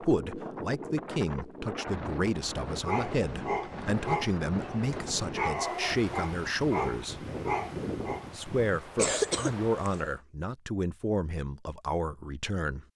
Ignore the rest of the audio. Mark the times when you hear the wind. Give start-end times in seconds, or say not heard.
0.0-10.2.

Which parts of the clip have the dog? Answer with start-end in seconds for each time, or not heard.
2.9-8.2.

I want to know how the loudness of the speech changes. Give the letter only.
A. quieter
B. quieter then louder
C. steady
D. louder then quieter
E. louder
C.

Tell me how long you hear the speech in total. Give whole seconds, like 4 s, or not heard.
12 s.